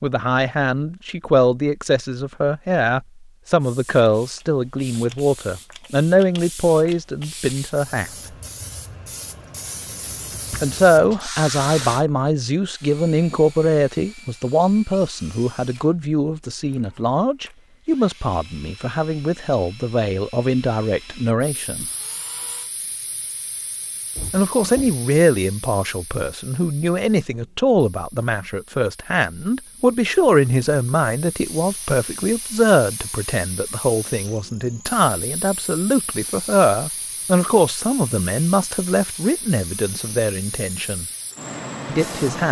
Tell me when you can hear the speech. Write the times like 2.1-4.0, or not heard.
0.0-8.1, 10.6-21.9, 24.3-41.0, 41.9-42.4.